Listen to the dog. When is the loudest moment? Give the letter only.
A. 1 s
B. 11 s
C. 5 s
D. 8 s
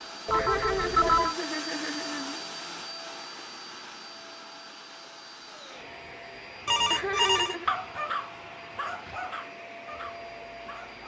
D.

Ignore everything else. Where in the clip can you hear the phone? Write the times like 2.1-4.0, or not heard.
0.2-1.4, 6.7-7.5.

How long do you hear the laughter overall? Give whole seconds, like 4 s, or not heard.
3 s.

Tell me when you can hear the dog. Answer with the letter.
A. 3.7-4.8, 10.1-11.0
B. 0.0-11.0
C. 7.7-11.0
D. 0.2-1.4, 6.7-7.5
C.